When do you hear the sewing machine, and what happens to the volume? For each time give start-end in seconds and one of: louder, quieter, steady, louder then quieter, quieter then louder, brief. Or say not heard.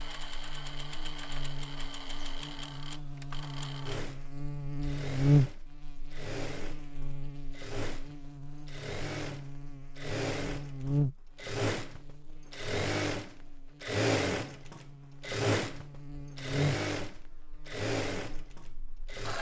0.0-19.3 louder.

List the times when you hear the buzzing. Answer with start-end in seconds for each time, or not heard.
0.0-19.2.